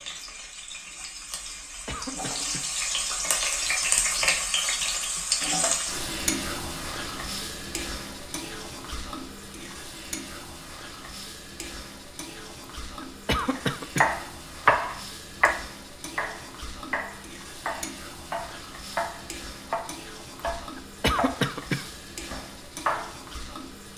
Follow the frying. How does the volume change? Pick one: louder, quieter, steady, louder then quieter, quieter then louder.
quieter.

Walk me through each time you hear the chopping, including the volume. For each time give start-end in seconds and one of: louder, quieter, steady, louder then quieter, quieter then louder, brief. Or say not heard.
13.6-23.2 quieter.